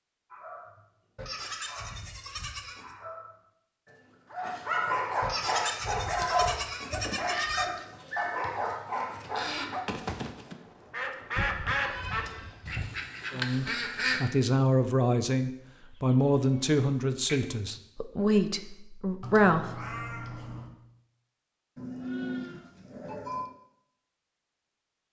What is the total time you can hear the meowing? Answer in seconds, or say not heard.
2 s.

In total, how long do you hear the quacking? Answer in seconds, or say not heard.
5 s.